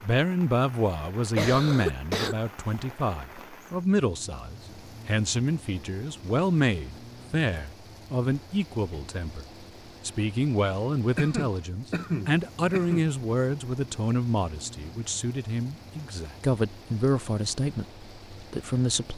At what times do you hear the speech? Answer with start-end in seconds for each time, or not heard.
0.0-9.4, 10.1-19.1.